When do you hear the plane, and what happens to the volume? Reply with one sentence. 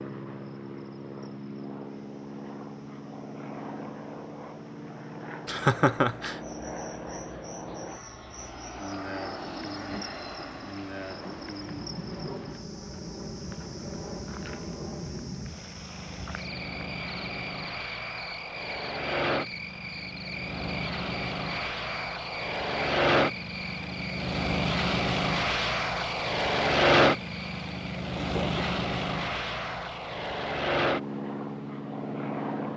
The plane can be heard from 0.0 to 32.7 s, getting louder.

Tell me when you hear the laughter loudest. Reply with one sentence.
The loudest moment of the laughter is at 6 seconds.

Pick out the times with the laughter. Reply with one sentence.
The laughter can be heard from 5.5 to 6.3 s and from 28.1 to 28.6 s.